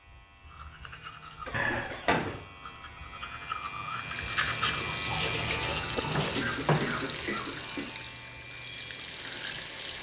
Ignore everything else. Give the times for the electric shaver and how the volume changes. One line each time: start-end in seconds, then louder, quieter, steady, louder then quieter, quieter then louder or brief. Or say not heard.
0.0-9.9 louder then quieter.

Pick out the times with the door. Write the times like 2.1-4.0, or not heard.
1.5-2.4, 6.0-7.1.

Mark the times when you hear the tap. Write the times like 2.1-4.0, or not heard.
3.9-9.9.